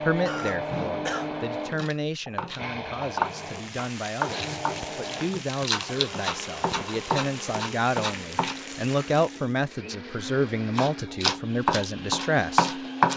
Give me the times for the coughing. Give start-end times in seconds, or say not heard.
0.2-1.8.